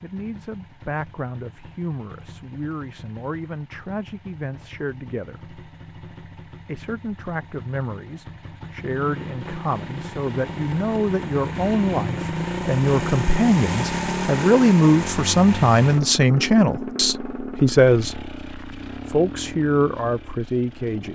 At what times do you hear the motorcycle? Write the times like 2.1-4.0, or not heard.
0.0-21.1.